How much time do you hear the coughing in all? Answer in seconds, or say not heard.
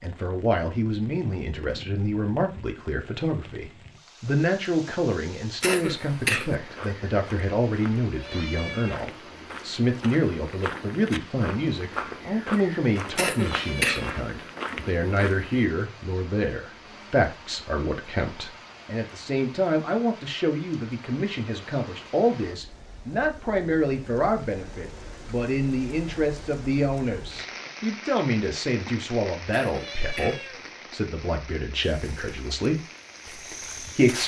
3 s.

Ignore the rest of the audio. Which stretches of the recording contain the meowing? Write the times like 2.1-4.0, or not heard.
8.1-9.1, 13.4-14.2, 29.7-30.7.